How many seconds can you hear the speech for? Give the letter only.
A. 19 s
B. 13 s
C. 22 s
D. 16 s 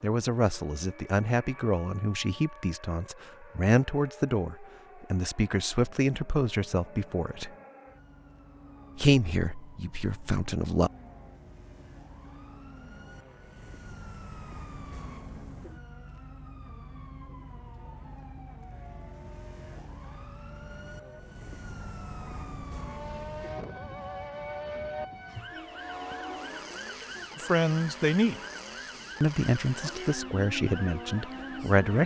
B.